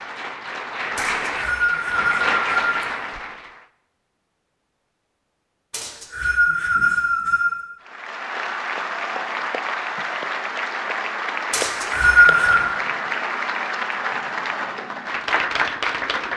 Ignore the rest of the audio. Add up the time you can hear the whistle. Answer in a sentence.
The whistle can be heard for 5 seconds in total.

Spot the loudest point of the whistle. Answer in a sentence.
The volume of the whistle peaks at 12 seconds.